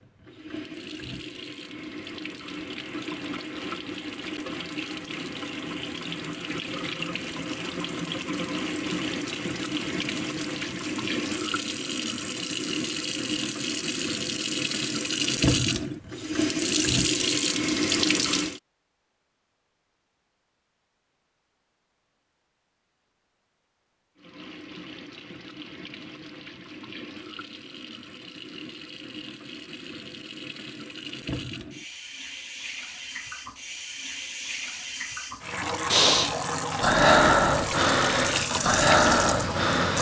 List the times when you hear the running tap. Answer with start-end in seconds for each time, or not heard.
0.0-18.6, 24.1-39.9.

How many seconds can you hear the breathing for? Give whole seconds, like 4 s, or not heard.
4 s.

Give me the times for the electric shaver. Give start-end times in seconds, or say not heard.
not heard.